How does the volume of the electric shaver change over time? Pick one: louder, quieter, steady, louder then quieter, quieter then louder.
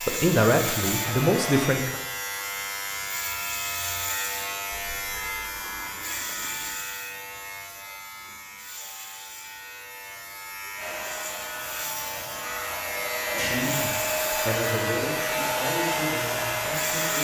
quieter then louder.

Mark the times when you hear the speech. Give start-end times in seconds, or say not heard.
0.0-2.0, 13.3-17.1.